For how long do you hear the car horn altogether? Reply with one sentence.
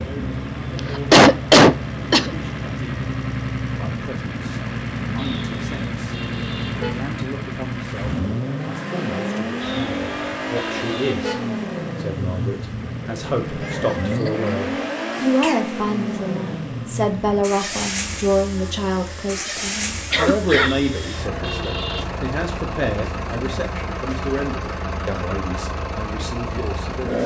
You can hear the car horn for 5 seconds altogether.